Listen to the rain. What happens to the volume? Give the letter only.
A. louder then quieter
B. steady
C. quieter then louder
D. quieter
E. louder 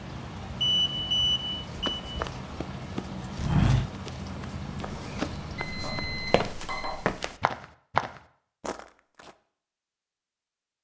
B.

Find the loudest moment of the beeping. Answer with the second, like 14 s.
1 s.